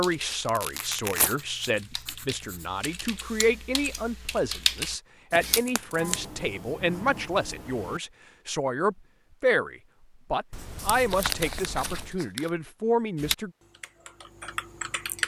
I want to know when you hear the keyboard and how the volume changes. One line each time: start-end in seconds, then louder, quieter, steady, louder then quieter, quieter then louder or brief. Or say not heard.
0.0-5.6 louder
13.2-15.2 brief.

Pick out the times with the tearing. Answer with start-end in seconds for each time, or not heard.
0.5-1.4, 5.3-6.3, 10.8-12.5.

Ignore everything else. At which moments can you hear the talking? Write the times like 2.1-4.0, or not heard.
0.0-13.5.